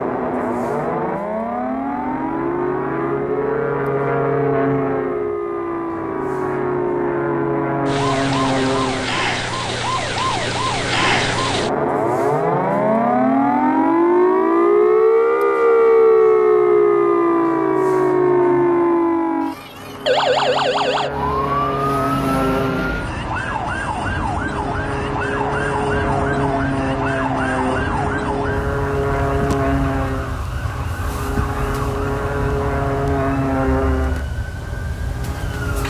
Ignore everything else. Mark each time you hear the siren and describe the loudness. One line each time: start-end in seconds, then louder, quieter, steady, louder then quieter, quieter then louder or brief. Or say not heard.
0.0-35.8 louder then quieter.